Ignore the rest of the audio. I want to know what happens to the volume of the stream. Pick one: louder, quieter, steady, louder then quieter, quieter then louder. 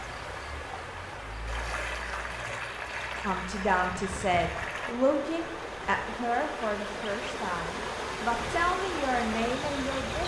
steady.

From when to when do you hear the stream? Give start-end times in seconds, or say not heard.
0.0-10.2.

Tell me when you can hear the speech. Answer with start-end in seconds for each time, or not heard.
3.2-10.2.